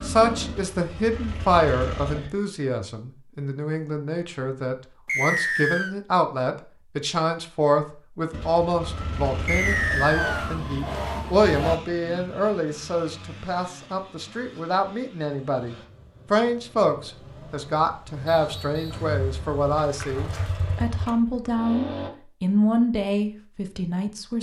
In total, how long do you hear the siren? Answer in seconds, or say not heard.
3 s.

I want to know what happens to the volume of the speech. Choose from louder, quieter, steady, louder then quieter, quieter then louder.
steady.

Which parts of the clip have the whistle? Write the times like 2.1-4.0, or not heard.
5.0-6.0, 9.4-10.6, 18.4-19.1.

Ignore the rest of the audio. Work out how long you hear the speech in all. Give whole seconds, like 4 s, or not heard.
24 s.